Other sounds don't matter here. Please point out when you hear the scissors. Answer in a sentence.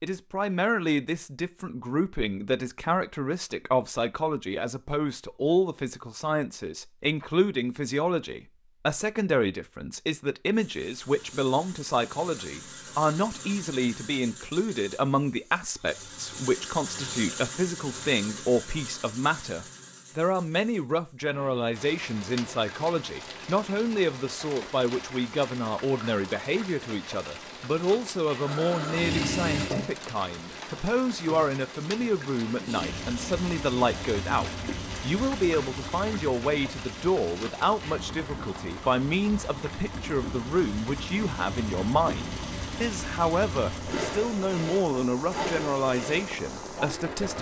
The scissors can't be heard in this clip.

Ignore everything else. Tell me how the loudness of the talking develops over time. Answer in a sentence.
The volume of the talking stays about the same.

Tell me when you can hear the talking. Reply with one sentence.
You can hear the talking from 0.0 to 47.3 s.